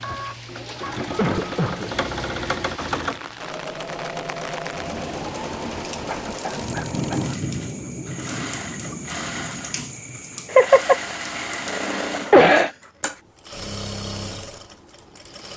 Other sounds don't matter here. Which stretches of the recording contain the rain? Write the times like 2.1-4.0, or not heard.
0.0-11.8.